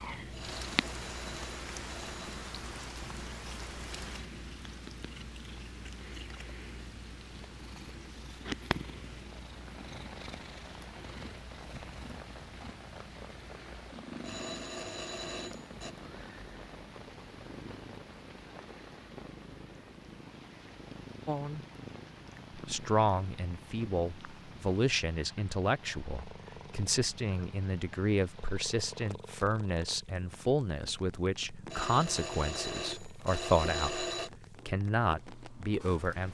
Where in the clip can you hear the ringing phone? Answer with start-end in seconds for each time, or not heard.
0.3-2.5, 14.2-15.9, 31.7-34.3.